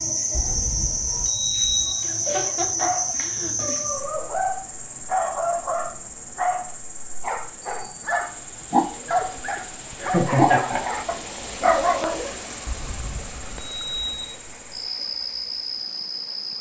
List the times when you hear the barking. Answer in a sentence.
The barking can be heard from 2.8 to 12.3 s.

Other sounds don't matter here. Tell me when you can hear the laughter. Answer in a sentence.
You can hear the laughter from 2.0 to 3.8 s and from 10.0 to 11.0 s.